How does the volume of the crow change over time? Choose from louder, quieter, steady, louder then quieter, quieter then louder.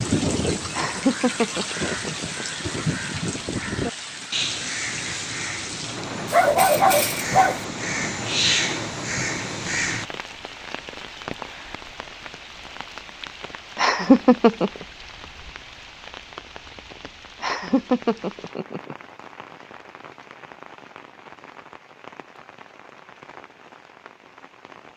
louder.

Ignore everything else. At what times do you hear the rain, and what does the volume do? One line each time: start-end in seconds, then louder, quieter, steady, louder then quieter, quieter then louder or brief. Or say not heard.
0.0-24.9 quieter.